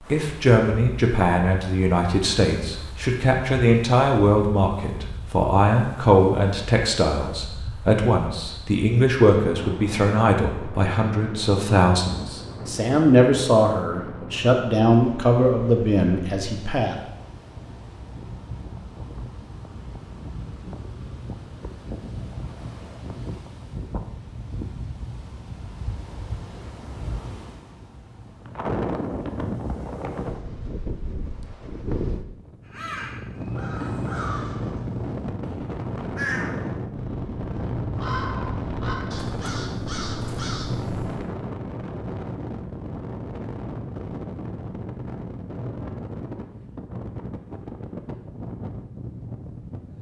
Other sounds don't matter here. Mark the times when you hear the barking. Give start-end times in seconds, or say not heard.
not heard.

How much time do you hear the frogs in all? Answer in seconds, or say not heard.
not heard.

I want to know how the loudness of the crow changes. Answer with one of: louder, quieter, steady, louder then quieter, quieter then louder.
quieter then louder.